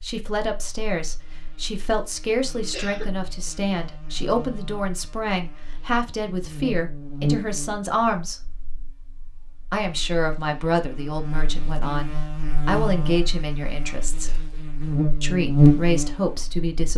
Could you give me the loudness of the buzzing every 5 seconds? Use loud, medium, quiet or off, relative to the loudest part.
quiet, quiet, quiet, loud.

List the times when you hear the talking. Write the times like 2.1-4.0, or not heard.
0.0-8.4, 9.7-14.3, 15.2-16.9.